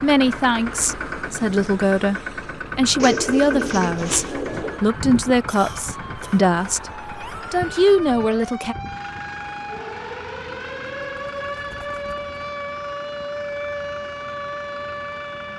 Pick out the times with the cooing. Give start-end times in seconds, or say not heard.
3.0-4.8, 10.7-12.5.